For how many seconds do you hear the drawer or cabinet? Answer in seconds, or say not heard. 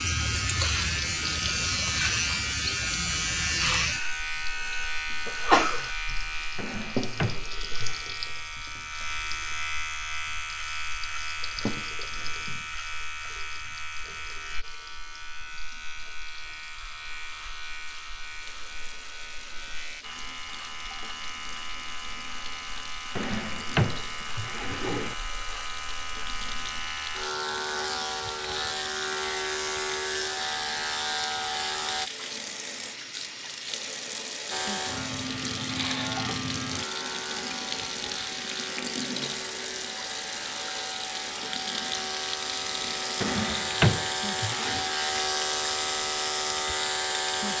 5 s.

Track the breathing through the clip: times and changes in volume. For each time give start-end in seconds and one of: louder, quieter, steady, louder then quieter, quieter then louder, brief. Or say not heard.
not heard.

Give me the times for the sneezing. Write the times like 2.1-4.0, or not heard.
4.4-5.9.